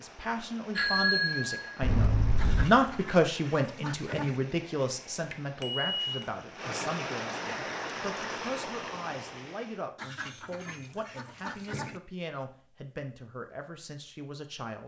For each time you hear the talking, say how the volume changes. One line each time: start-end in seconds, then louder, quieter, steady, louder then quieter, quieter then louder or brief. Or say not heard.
0.0-14.8 quieter.